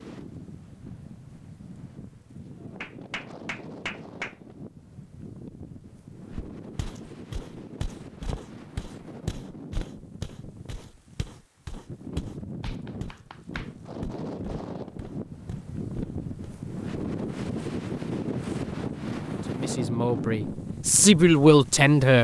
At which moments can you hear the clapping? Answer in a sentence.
You can hear the clapping from 2.8 to 4.3 s and from 12.6 to 13.7 s.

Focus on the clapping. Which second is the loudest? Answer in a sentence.
The volume of the clapping peaks at 4 seconds.